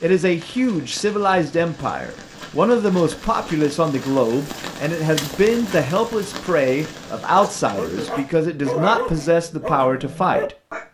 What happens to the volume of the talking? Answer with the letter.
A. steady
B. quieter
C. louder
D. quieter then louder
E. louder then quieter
A.